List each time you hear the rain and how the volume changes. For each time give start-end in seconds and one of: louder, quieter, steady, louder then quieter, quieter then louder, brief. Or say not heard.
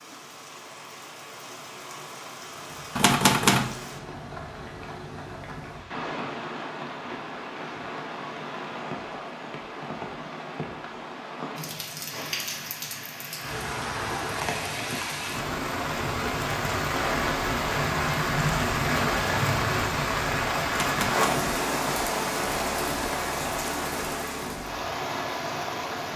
0.0-26.1 louder.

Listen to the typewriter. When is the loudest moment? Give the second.
3 s.